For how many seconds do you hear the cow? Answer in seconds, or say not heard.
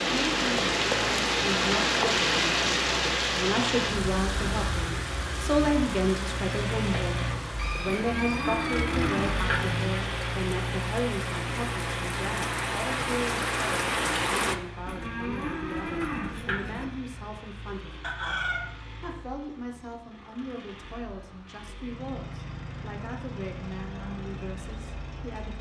4 s.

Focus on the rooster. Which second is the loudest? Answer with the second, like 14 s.
18 s.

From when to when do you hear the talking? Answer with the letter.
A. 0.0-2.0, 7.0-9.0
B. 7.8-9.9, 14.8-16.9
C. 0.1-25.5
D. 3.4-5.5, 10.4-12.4
C.